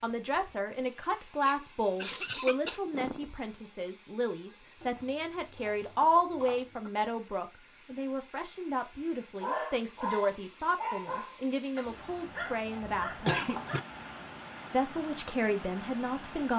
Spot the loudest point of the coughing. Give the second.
13 s.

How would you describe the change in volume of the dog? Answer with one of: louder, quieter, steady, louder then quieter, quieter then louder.
quieter then louder.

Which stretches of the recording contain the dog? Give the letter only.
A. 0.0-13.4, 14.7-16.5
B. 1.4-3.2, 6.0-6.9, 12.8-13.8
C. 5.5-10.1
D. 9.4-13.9
D.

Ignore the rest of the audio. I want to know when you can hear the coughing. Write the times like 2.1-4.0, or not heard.
1.4-3.2, 6.0-6.9, 12.8-13.8.